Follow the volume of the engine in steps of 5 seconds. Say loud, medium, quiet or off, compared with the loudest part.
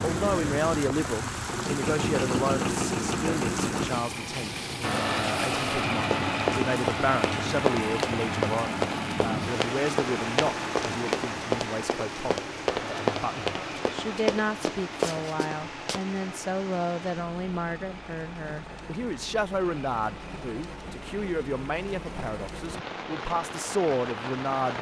loud, loud, medium, quiet, quiet.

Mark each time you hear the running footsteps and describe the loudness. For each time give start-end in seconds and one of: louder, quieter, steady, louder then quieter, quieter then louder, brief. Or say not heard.
6.0-16.0 steady.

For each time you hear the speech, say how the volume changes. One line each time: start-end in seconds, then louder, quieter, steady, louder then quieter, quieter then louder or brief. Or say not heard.
0.0-24.7 steady.